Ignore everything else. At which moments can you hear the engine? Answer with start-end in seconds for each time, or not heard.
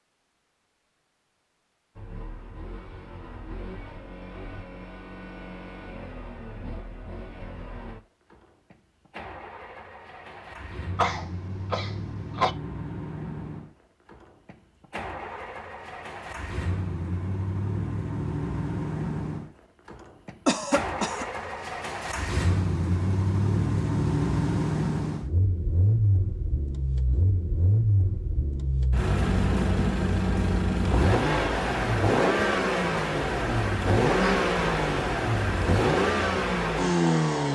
1.9-37.4.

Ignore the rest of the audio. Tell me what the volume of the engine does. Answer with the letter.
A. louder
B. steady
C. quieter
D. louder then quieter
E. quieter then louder
A.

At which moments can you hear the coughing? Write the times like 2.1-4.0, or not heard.
10.9-12.6, 20.4-21.2.